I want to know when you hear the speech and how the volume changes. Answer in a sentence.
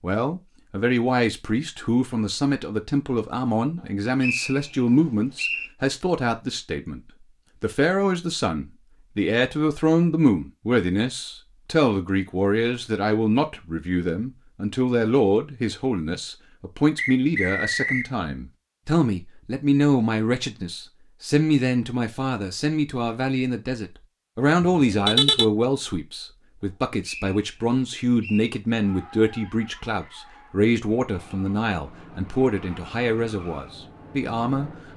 The speech can be heard from 0.0 to 34.7 s, at a steady volume.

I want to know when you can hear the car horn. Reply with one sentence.
You can hear the car horn from 24.7 to 25.4 s.